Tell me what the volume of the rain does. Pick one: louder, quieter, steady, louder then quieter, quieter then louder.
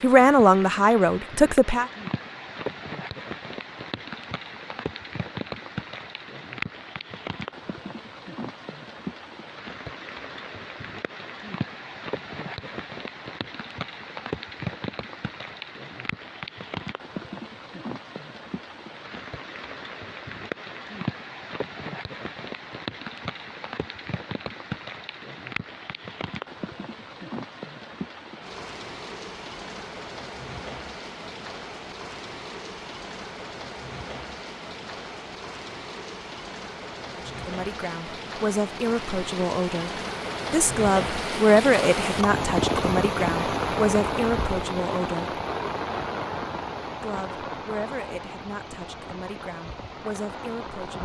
louder.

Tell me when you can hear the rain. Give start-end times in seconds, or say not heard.
0.0-51.0.